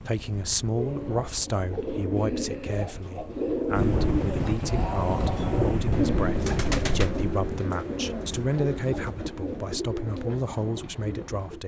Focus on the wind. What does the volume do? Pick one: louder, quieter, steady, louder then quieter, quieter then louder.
louder.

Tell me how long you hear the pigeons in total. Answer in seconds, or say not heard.
11 s.